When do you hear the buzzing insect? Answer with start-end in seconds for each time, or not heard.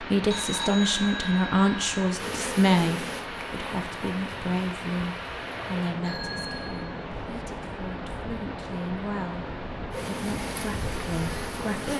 2.1-6.0, 9.9-11.9.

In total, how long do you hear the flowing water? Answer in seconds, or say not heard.
12 s.